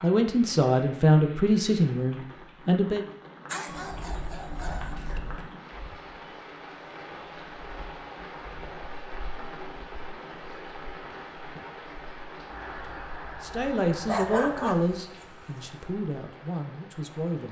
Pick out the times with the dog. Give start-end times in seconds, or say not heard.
3.5-5.2, 14.1-15.7.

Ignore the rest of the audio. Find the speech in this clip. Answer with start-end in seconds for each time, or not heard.
0.0-3.0, 13.4-17.4.